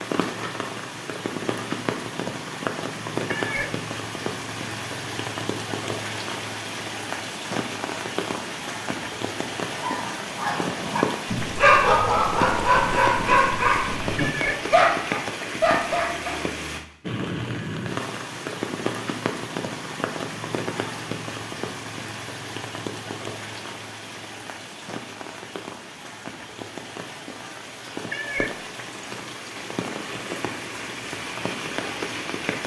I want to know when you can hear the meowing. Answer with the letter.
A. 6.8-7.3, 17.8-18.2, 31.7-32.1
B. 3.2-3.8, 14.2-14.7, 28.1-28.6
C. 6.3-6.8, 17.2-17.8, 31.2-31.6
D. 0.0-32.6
B.